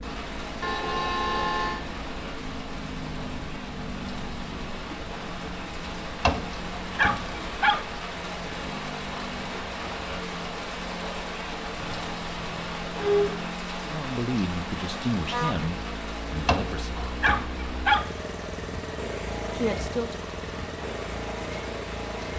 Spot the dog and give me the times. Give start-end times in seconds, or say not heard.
6.2-7.8, 16.4-18.1.